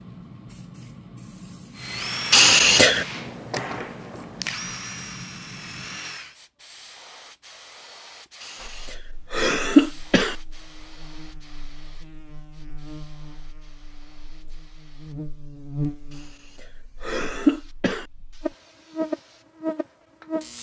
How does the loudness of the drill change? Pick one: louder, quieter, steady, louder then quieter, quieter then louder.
quieter.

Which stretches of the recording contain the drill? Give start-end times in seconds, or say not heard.
1.8-6.3.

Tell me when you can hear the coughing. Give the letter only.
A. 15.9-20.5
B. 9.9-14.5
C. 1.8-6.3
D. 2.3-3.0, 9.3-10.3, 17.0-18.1
D.